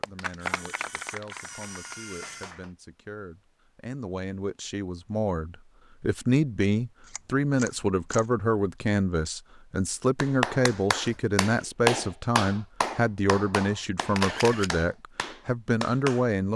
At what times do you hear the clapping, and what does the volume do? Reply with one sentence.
You can hear the clapping briefly from 0.0 to 2.7 s; and from 10.2 to 16.3 s, getting louder then quieter.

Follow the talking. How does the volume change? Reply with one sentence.
The loudness of the talking goes up.